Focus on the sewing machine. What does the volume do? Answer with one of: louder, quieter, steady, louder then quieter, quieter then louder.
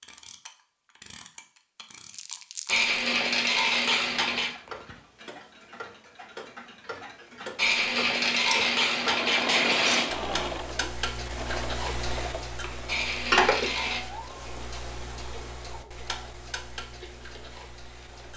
quieter.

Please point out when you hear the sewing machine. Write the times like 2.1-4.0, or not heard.
8.8-18.3.